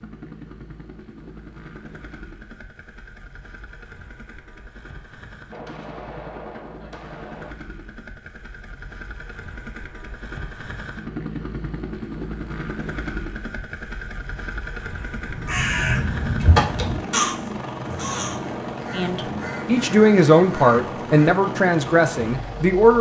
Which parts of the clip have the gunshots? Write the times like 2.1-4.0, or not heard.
5.5-7.5.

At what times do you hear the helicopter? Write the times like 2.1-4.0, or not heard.
0.0-22.9.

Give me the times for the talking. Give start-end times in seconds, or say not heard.
18.9-22.9.